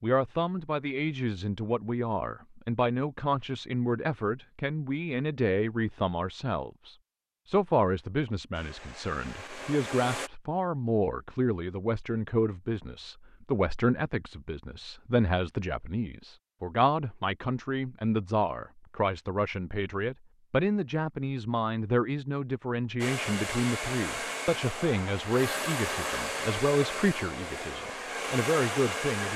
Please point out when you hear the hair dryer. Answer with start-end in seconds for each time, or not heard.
8.5-10.3, 23.0-29.3.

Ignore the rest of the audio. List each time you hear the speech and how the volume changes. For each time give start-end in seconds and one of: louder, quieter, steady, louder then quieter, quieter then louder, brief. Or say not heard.
0.0-29.3 steady.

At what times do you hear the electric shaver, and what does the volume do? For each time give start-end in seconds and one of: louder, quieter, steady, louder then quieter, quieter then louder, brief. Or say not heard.
not heard.